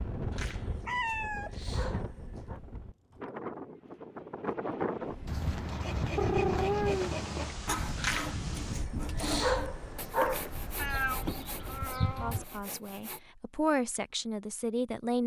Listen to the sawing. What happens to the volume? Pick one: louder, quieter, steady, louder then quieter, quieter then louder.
quieter.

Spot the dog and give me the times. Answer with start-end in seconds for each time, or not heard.
0.3-2.6, 8.0-10.5.